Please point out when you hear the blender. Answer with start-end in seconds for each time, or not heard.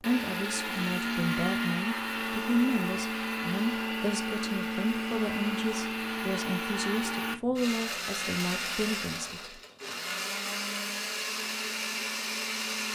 0.0-12.8.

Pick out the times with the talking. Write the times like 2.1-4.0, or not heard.
0.0-9.6.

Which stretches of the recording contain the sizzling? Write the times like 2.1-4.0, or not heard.
not heard.